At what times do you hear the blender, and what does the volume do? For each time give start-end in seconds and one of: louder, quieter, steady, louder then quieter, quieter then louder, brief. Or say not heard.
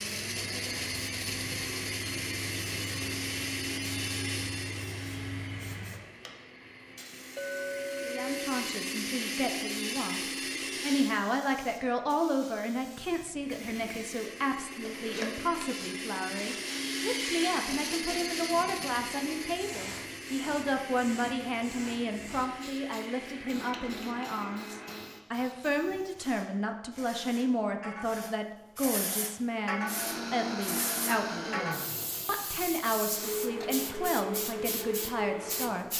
0.0-11.2 quieter then louder
13.3-25.2 louder then quieter
29.8-35.8 quieter then louder.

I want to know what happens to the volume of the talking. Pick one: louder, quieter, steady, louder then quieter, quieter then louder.
steady.